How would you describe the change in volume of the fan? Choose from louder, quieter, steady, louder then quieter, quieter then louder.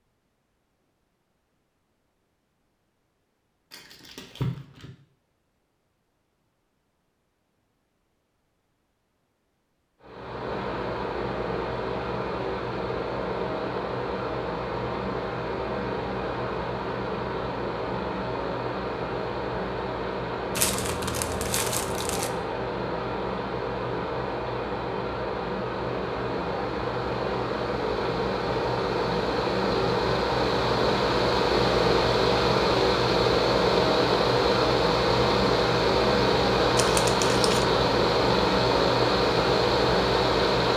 louder.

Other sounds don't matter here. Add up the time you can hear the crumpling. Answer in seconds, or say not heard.
4 s.